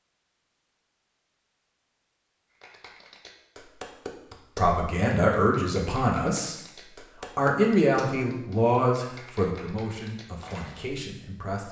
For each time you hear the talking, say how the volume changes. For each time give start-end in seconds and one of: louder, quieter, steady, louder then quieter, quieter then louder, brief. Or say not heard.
4.5-6.8 brief
7.3-11.6 quieter.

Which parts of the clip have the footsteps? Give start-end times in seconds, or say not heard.
not heard.